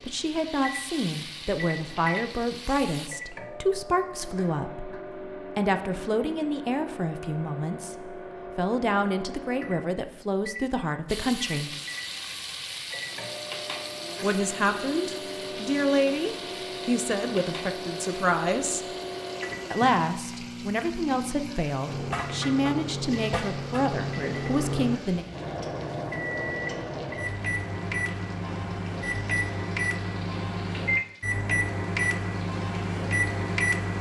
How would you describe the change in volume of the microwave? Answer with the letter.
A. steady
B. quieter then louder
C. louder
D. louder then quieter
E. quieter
C.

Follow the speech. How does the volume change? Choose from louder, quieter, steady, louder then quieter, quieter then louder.
steady.